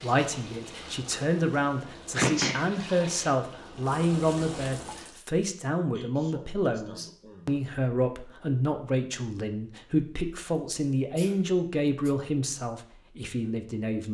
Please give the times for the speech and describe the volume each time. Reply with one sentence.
The speech can be heard from 0.0 to 14.0 s, at a steady volume.